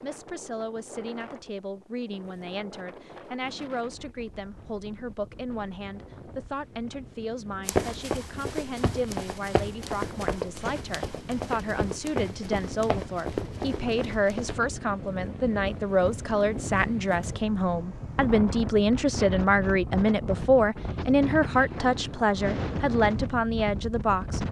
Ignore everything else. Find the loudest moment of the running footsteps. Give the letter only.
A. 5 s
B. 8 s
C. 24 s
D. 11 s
B.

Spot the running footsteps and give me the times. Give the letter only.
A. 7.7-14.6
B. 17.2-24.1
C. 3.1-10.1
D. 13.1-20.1
A.